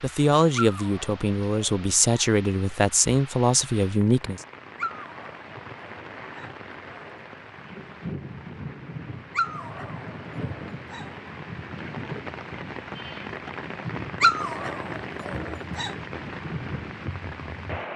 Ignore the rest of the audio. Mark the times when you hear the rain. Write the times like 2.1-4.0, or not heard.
0.0-17.9.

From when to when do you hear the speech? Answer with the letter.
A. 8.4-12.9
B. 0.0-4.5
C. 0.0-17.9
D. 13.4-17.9
B.